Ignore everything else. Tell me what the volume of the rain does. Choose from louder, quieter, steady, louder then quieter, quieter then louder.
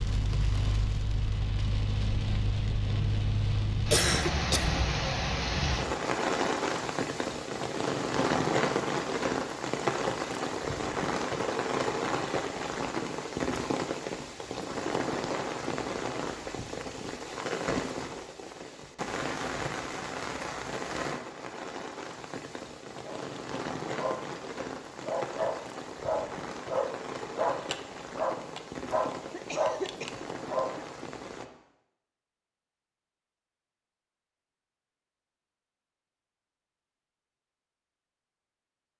quieter.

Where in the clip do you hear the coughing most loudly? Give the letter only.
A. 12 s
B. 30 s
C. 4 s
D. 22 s
C.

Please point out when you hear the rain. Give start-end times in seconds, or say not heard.
0.0-31.5.